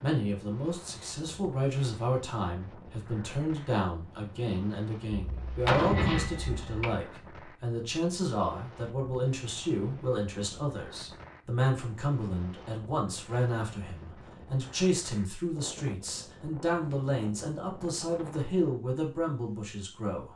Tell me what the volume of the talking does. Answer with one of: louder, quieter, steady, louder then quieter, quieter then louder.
steady.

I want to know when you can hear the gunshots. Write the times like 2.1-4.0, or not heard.
5.2-7.0.